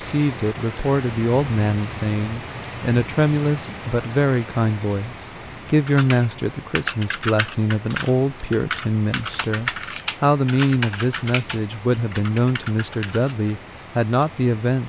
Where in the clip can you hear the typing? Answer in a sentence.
You can hear the typing from 5.8 to 13.3 s.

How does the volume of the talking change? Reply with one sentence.
The volume of the talking stays about the same.